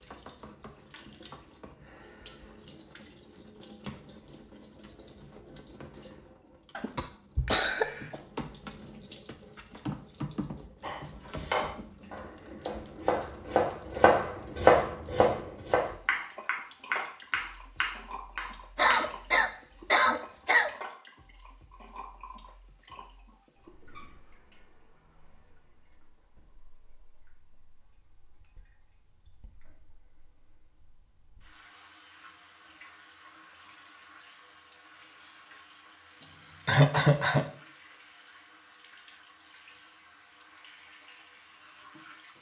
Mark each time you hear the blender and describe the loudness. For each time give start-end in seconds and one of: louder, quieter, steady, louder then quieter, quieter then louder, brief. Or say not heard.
not heard.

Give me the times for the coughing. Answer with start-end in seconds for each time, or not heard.
6.8-8.2, 18.8-20.7, 36.2-37.5.